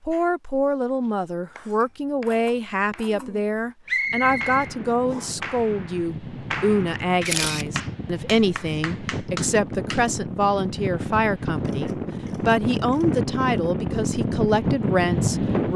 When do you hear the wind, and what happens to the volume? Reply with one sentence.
You can hear the wind from 4.0 to 15.7 s, getting louder.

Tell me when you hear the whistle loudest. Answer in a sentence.
The loudest moment of the whistle is at 4 seconds.